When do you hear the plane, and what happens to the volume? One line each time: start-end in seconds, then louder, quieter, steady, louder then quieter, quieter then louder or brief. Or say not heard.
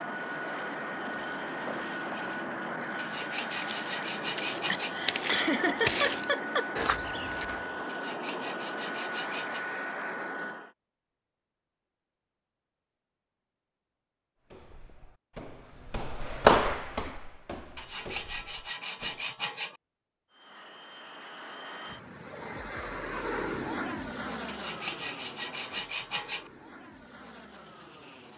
0.0-10.8 steady
20.3-28.3 louder then quieter.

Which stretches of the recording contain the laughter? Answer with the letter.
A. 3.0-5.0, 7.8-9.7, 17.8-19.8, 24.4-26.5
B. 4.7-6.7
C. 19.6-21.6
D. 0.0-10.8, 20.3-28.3
B.